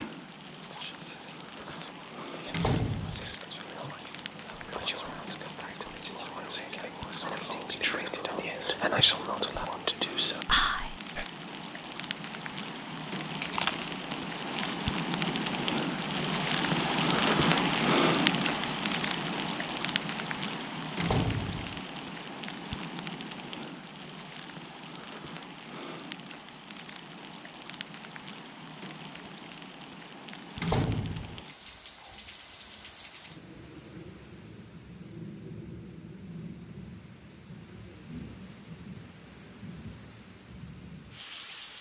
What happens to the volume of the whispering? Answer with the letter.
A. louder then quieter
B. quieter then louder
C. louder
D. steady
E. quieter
C.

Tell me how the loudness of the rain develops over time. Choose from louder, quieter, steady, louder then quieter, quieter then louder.
louder then quieter.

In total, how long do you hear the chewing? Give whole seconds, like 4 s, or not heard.
2 s.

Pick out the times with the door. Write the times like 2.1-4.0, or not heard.
2.5-3.4, 21.0-21.8, 30.6-31.4.